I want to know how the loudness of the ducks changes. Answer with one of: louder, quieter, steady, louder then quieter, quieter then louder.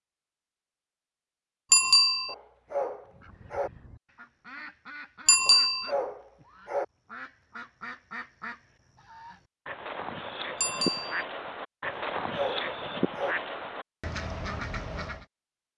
louder.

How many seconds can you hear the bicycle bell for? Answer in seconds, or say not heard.
2 s.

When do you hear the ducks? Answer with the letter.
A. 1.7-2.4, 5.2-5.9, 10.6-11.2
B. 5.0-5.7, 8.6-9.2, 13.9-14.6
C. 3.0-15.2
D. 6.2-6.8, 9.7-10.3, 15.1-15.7
C.